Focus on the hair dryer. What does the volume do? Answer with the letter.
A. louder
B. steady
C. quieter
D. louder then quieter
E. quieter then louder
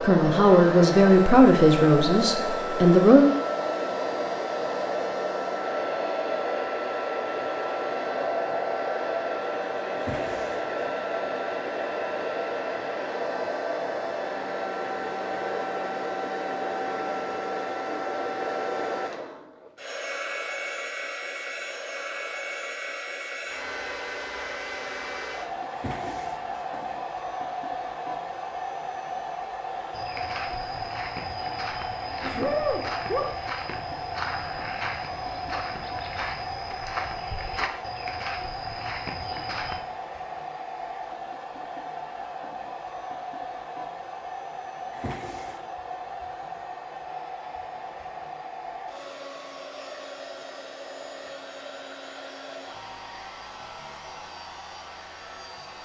C.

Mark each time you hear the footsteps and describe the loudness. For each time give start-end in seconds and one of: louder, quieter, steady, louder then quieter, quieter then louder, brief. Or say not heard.
29.9-39.8 steady.